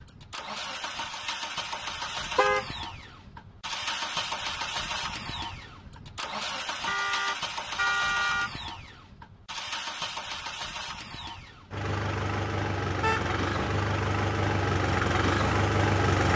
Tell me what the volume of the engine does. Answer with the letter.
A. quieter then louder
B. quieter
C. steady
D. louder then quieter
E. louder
E.